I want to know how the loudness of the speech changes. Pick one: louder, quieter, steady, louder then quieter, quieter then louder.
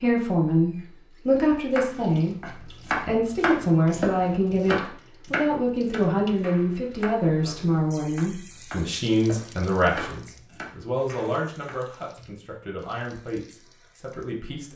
quieter.